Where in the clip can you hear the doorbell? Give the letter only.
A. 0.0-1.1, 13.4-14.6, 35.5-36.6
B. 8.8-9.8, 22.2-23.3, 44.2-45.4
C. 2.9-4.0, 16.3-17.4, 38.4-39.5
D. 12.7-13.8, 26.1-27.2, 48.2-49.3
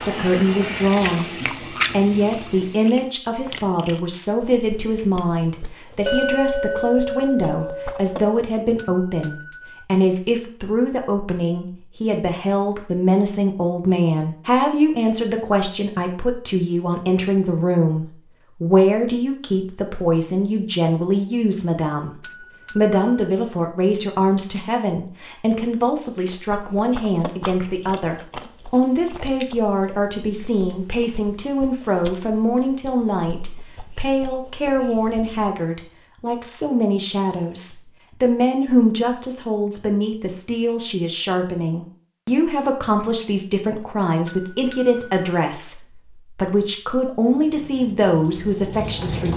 B.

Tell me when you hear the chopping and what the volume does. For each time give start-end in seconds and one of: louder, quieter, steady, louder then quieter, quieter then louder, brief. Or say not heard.
not heard.